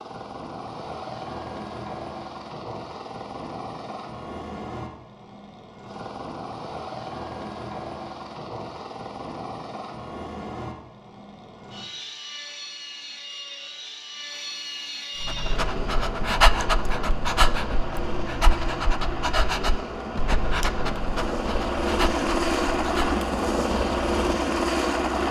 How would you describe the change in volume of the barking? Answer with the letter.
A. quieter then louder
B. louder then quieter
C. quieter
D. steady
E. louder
C.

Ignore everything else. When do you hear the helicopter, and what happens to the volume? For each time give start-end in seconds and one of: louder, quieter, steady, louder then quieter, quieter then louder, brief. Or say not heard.
0.0-25.2 louder.